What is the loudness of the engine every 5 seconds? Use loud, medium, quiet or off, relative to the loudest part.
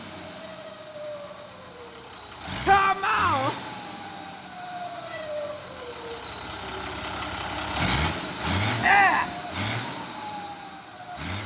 medium, loud, medium.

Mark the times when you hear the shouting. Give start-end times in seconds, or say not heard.
2.6-3.5, 8.8-9.3.